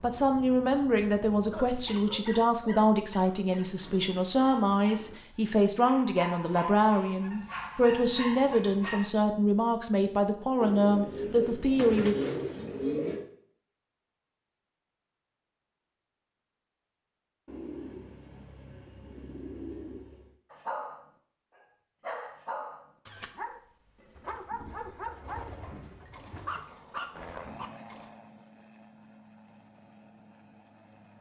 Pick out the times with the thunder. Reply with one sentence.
You can't hear the thunder here.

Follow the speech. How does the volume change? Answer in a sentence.
The volume of the speech stays about the same.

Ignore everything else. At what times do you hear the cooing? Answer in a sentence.
The cooing can be heard from 3.5 to 5.2 s, from 10.6 to 13.2 s, from 17.4 to 20.3 s and from 24.1 to 26.5 s.